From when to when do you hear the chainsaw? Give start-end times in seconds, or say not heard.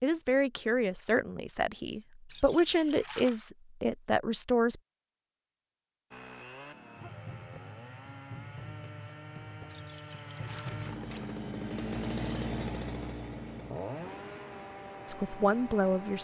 6.1-16.1.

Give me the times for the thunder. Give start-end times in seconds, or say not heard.
not heard.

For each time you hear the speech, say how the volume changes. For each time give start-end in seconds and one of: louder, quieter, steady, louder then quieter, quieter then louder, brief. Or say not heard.
0.0-4.8 quieter then louder
15.1-16.1 brief.